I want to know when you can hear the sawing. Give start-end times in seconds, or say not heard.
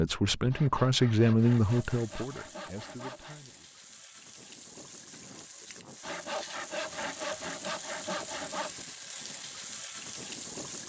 0.5-3.4, 6.0-8.7.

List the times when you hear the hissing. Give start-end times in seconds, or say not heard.
1.4-10.8.